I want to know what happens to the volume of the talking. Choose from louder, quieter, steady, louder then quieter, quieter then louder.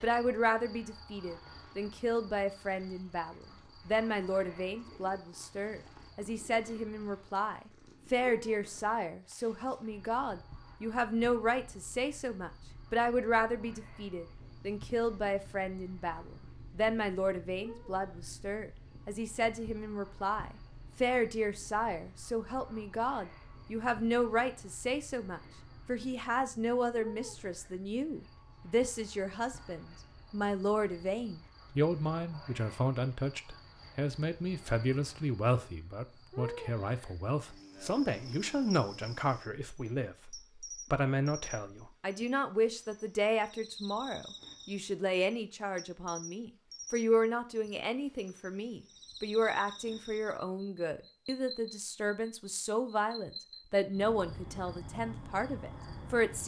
steady.